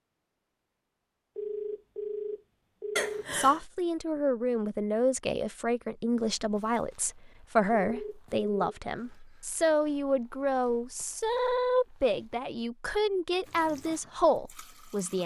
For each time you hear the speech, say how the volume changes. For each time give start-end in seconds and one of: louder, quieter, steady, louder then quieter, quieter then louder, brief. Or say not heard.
3.3-15.2 steady.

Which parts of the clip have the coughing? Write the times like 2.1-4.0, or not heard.
3.0-3.6.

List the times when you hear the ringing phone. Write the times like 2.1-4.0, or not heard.
1.4-3.3, 7.8-8.8.